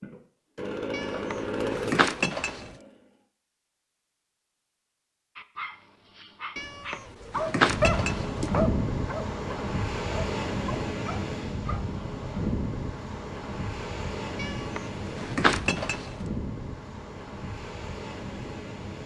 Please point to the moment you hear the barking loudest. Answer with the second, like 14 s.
8 s.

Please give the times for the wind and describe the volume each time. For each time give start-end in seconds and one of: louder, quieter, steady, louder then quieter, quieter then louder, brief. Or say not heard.
7.5-19.0 quieter.